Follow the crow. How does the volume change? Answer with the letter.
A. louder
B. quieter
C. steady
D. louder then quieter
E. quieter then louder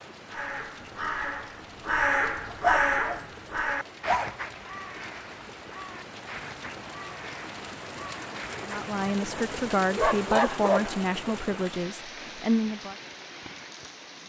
B.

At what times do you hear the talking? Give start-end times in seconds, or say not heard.
8.7-12.9.